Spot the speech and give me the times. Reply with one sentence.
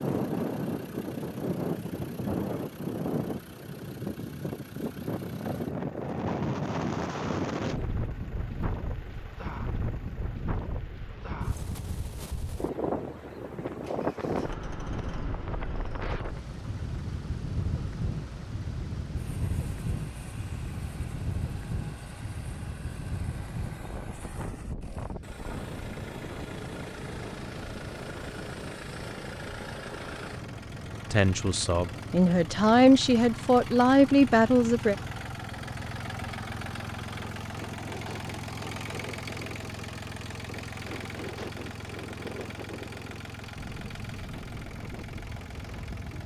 The speech can be heard from 31.1 to 35.0 s.